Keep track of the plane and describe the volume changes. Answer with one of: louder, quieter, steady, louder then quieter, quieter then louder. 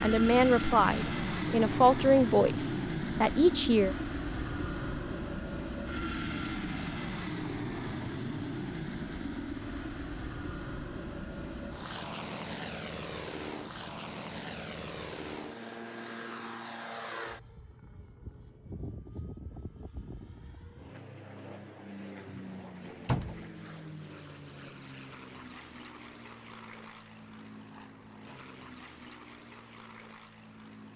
quieter.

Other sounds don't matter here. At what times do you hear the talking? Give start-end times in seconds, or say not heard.
0.0-4.0.